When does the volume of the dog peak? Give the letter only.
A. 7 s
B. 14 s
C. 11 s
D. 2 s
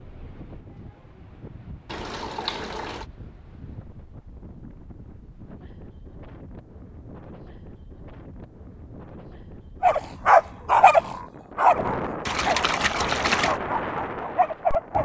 C.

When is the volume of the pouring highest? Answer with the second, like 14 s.
13 s.